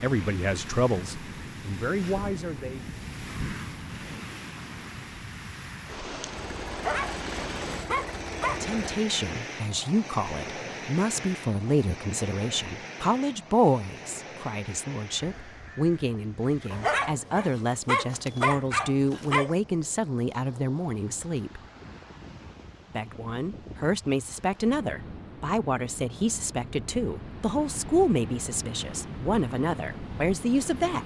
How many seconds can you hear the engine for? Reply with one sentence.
You can hear the engine for 3 seconds altogether.